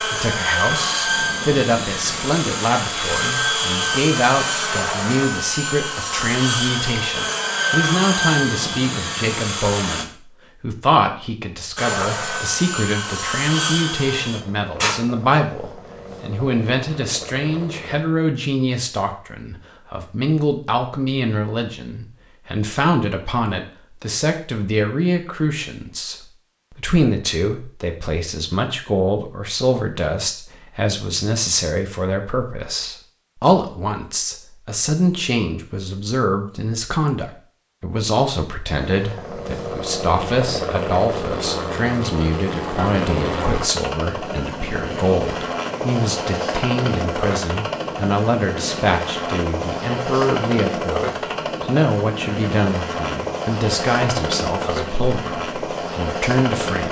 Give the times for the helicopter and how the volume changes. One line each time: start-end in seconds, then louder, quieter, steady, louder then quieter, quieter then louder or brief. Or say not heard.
0.0-10.1 steady
11.8-18.1 quieter
38.8-56.8 steady.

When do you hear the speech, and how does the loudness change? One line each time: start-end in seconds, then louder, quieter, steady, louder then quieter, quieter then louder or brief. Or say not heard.
0.0-56.8 steady.